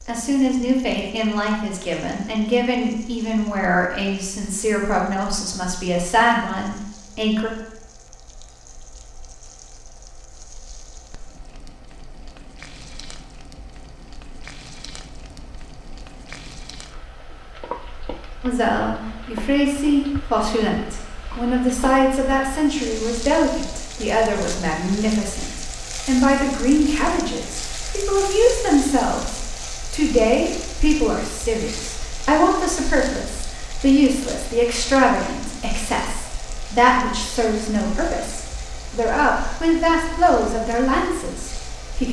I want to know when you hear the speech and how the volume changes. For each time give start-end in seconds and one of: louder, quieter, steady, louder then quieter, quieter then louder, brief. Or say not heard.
0.1-7.5 steady
18.4-42.0 steady.